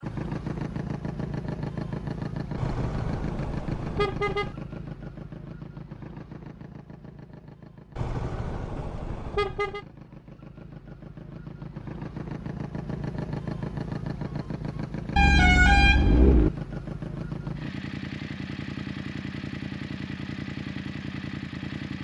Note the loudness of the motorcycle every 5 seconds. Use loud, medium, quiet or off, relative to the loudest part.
loud, medium, loud, loud, loud.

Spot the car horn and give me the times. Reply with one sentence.
You can hear the car horn from 2.5 to 4.5 s, from 8.0 to 9.8 s and from 15.2 to 16.5 s.